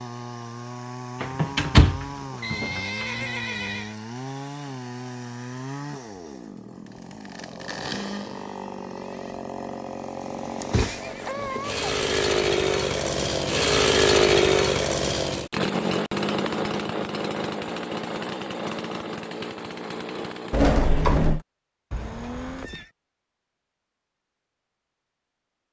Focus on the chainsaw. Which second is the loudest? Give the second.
14 s.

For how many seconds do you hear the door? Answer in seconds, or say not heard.
3 s.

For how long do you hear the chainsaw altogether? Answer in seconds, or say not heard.
21 s.